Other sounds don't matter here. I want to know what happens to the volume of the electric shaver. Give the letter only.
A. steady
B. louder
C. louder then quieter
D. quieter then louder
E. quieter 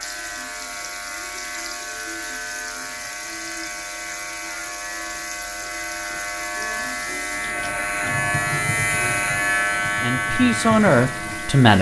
B.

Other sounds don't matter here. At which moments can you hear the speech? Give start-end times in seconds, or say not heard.
10.0-11.7.